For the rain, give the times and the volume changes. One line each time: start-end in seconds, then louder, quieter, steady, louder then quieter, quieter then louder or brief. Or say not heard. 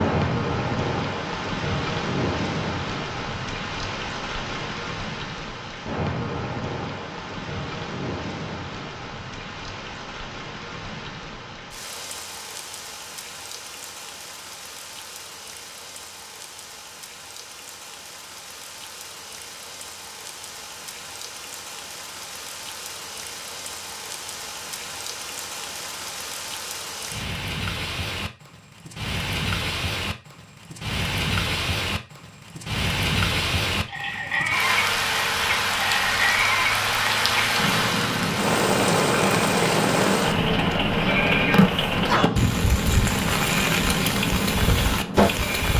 0.0-45.7 quieter then louder.